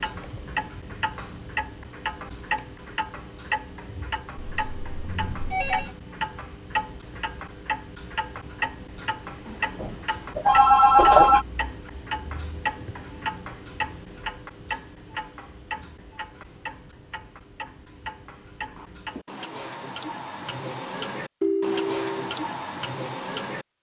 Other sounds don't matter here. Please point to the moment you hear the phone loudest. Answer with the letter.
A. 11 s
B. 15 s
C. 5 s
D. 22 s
A.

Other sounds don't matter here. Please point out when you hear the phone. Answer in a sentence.
The phone can be heard from 4.3 to 5.9 s, from 9.8 to 11.4 s and from 21.4 to 22.4 s.